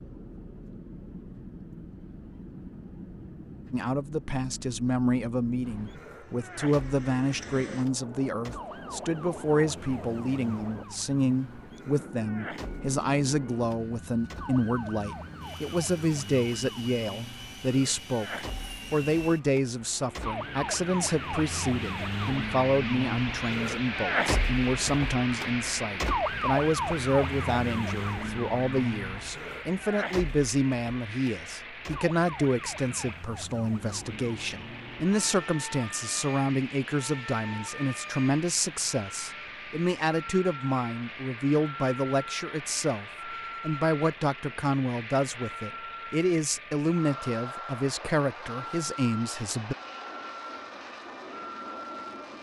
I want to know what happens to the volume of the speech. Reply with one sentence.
The loudness of the speech stays about the same.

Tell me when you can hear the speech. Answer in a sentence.
The speech can be heard from 3.7 to 49.8 s.